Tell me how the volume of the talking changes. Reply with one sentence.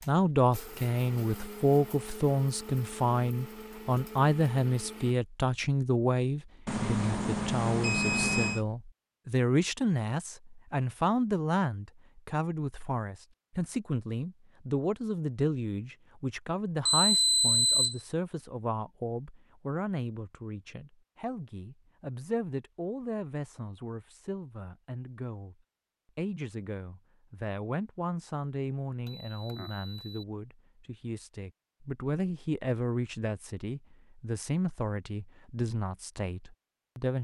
The loudness of the talking goes down.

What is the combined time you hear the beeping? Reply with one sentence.
You can hear the beeping for 4 seconds altogether.